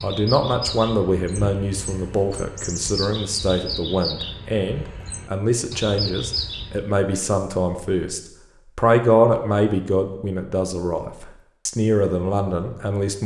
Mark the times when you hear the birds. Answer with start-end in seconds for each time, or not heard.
0.0-7.0.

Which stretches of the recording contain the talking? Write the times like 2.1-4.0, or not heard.
0.0-13.2.